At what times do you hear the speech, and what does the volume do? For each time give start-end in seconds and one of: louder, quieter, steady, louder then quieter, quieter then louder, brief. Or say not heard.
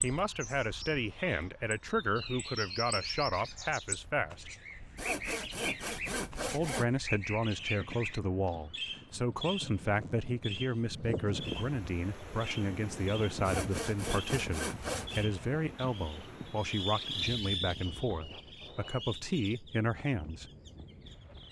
0.0-4.5 steady
6.5-20.5 steady.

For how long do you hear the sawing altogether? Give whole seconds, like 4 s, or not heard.
4 s.